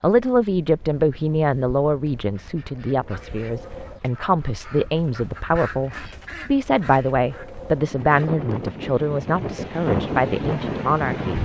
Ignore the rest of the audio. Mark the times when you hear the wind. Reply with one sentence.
The wind can be heard from 0.2 to 11.4 s.